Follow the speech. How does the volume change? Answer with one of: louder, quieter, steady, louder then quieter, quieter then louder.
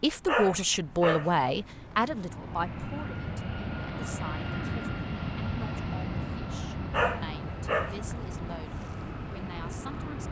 quieter.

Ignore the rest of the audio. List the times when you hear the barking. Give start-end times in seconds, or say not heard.
0.2-1.5, 6.9-8.2.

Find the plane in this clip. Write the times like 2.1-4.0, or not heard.
0.0-10.2.